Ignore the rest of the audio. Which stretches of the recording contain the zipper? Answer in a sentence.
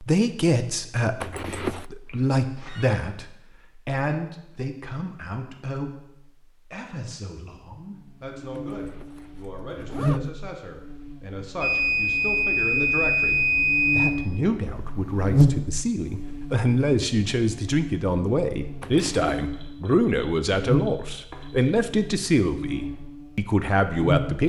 You can hear the zipper from 1.2 to 1.9 s, from 8.7 to 10.3 s and from 18.8 to 19.4 s.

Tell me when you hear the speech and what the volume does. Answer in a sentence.
The speech can be heard from 0.0 to 24.4 s, getting quieter then louder.